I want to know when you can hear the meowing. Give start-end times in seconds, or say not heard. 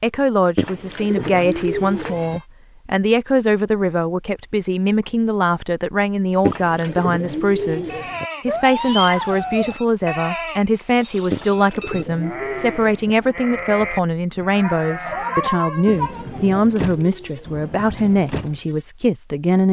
1.2-2.4, 8.4-9.8, 14.6-16.6.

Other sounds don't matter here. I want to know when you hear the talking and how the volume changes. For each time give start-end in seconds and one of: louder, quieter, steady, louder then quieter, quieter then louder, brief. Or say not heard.
0.0-19.6 steady.